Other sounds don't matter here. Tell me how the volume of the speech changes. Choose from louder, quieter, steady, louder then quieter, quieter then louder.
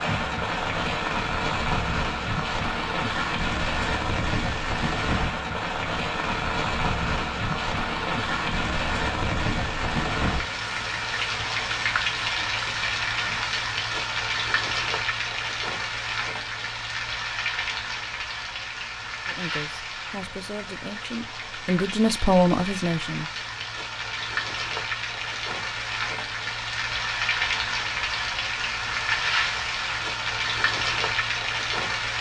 louder.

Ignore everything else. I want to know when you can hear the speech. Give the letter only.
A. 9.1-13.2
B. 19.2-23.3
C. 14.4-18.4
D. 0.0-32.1
B.